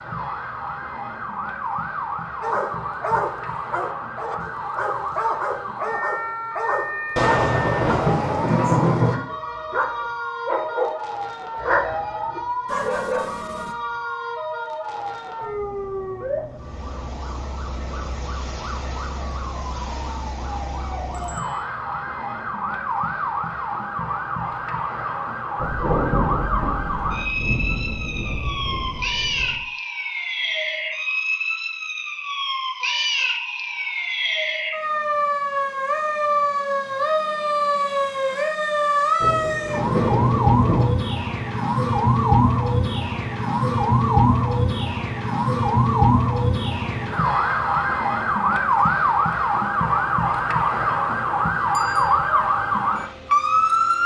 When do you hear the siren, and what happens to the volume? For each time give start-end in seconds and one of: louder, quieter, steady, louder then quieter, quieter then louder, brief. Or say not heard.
0.0-54.0 louder.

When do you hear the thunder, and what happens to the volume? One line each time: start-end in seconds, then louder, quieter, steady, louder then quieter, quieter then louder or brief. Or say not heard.
7.2-9.2 brief
25.6-29.6 quieter
39.2-40.9 brief.